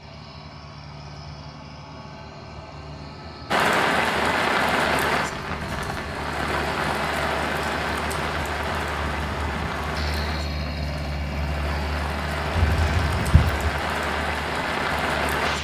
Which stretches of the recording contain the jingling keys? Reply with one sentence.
The jingling keys can be heard from 12.6 to 13.7 s.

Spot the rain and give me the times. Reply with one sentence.
The rain can be heard from 3.5 to 15.5 s.